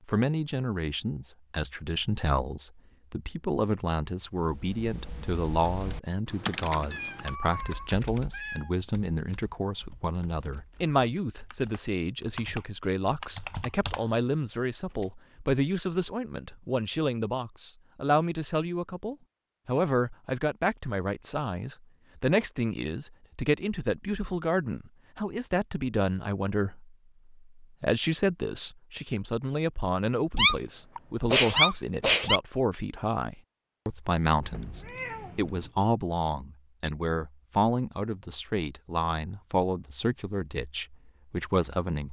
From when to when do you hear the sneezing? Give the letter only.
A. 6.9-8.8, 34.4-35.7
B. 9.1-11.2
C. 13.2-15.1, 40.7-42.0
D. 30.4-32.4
D.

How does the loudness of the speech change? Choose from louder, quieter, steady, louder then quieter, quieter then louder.
steady.